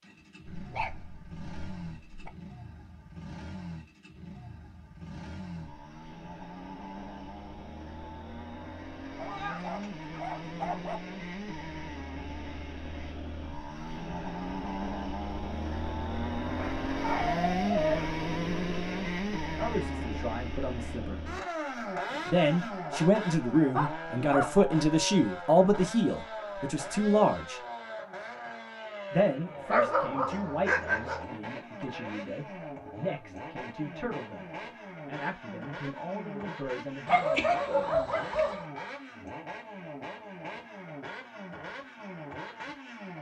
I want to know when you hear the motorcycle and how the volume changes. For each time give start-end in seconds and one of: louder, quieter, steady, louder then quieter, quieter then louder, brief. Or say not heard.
0.0-43.1 louder then quieter.